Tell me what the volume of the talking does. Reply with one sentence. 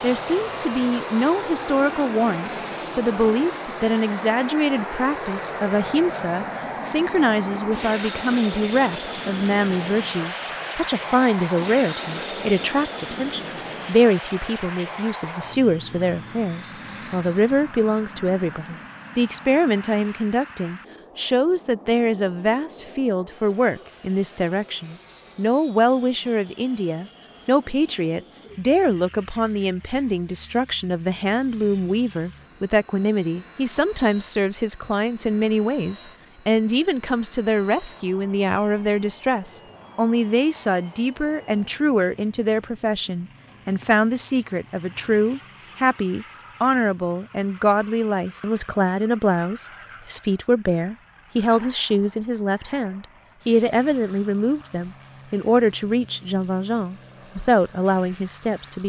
The volume of the talking stays about the same.